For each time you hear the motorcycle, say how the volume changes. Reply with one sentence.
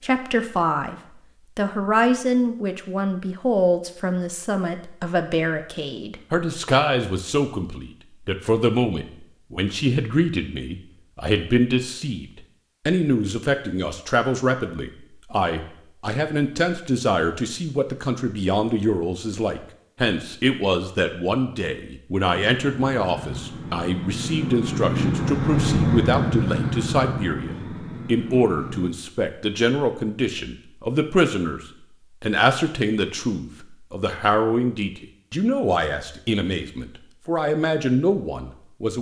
The motorcycle can be heard from 22.4 to 28.9 s, getting louder then quieter.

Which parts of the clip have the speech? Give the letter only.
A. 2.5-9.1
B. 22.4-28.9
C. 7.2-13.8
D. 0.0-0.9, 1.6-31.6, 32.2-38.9
D.